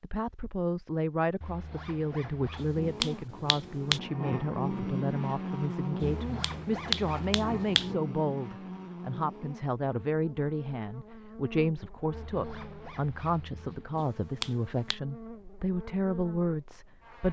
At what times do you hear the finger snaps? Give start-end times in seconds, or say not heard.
2.5-4.0, 6.0-7.9, 13.9-15.0.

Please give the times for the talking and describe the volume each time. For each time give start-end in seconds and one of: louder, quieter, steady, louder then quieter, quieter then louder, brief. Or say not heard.
0.0-17.2 steady.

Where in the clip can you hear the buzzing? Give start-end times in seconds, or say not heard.
2.8-17.2.